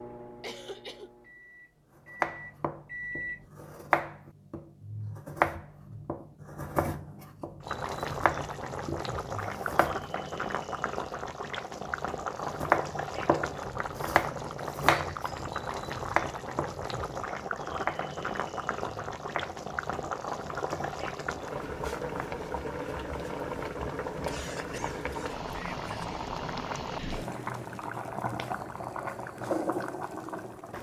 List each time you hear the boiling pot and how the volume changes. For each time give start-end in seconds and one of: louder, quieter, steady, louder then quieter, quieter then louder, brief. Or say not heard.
7.6-30.7 steady.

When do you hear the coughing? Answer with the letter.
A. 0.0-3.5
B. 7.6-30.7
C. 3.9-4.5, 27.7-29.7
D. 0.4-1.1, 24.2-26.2
D.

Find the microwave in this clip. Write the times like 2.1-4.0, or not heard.
0.0-3.5.